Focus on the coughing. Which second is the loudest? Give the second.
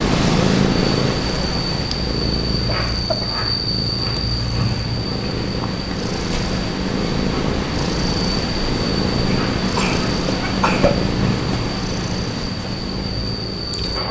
11 s.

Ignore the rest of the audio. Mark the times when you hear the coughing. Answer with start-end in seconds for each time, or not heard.
2.6-3.5, 9.2-11.0.